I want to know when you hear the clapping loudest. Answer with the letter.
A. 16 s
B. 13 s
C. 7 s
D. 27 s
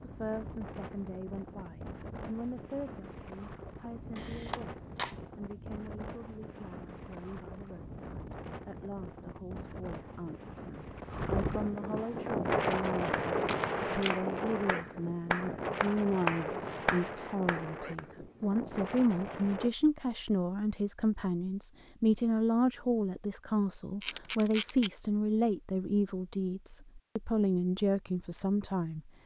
A.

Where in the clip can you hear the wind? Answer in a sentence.
The wind can be heard from 0.0 to 19.7 s.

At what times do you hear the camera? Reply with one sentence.
The camera can be heard from 4.2 to 5.2 s, from 13.4 to 14.2 s and from 24.0 to 24.9 s.